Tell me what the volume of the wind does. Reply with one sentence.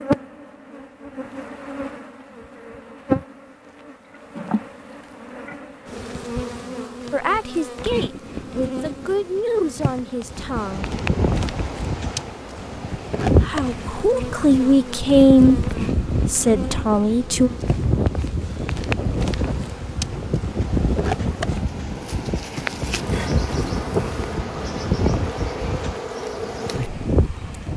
The volume of the wind stays about the same.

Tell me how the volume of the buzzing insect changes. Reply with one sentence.
The volume of the buzzing insect stays about the same.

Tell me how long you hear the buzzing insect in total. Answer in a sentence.
You can hear the buzzing insect for 28 seconds altogether.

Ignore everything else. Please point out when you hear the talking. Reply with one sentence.
The talking can be heard from 7.1 to 10.8 s and from 13.4 to 17.5 s.